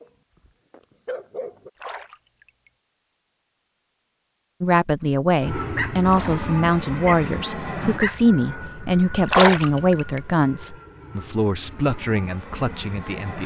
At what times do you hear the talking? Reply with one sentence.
You can hear the talking from 4.6 to 13.4 s.